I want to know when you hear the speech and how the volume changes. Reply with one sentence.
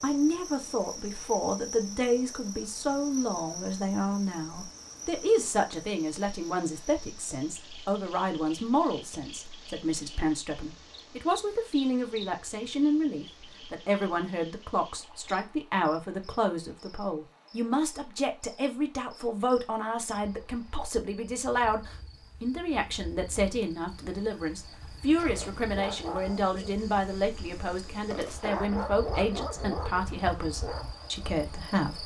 The speech can be heard from 0.0 to 32.0 s, at a steady volume.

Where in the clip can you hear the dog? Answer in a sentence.
The dog can be heard from 25.1 to 30.9 s.